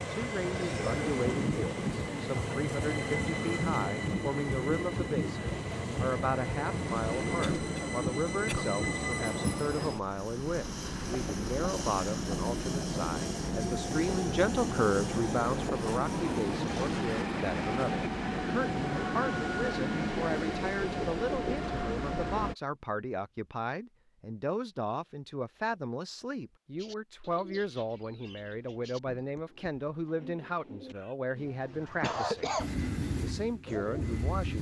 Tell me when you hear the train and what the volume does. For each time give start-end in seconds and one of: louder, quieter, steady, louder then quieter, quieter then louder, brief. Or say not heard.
0.0-22.6 steady
32.5-34.5 brief.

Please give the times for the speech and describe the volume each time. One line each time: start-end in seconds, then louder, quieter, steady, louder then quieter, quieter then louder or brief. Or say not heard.
0.0-32.5 steady
33.2-34.5 brief.